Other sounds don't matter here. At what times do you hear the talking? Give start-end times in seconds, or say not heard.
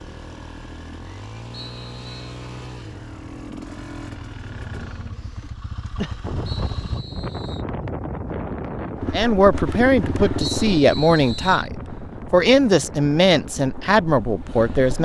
9.1-15.0.